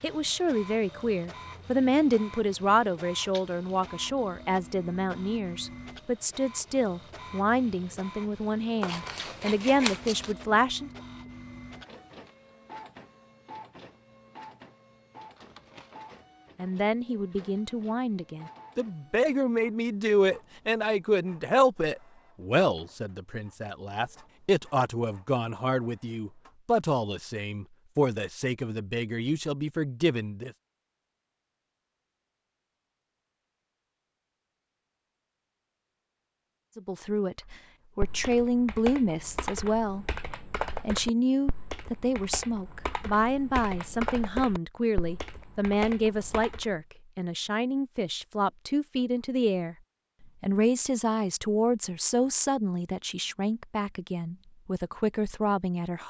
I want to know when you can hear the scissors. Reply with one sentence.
You can hear the scissors from 8.8 to 10.3 s.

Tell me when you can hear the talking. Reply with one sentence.
The talking can be heard from 0.0 to 10.9 s, from 16.6 to 30.5 s, from 36.8 to 40.0 s and from 40.9 to 56.0 s.